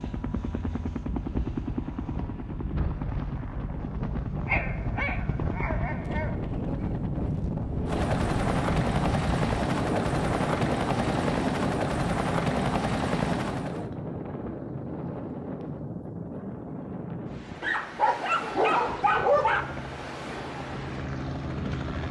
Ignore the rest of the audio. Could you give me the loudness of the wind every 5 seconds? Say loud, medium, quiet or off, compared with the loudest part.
medium, loud, loud, medium, medium.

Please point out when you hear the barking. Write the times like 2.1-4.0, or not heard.
4.5-6.3, 17.6-19.6.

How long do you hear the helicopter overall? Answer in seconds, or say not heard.
17 s.